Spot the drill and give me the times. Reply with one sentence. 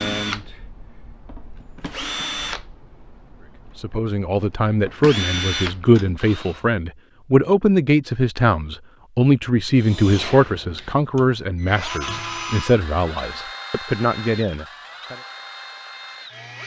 The drill can be heard from 0.0 to 6.6 s and from 9.8 to 16.6 s.